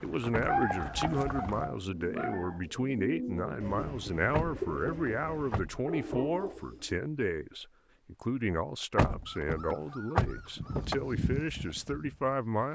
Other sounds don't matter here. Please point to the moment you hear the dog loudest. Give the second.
1 s.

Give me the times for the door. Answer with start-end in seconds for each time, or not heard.
0.3-1.1, 4.3-6.2, 8.9-11.0.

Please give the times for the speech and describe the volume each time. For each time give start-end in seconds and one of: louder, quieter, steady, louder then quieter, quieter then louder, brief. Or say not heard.
0.0-12.7 steady.